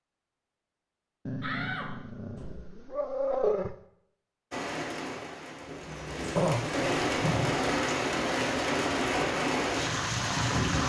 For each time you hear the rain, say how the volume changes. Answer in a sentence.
The rain can be heard from 4.5 to 10.8 s, getting louder.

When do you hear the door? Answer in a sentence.
You can hear the door from 1.4 to 2.6 s and from 5.7 to 7.0 s.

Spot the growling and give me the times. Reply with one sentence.
The growling can be heard from 1.2 to 3.8 s and from 6.3 to 7.5 s.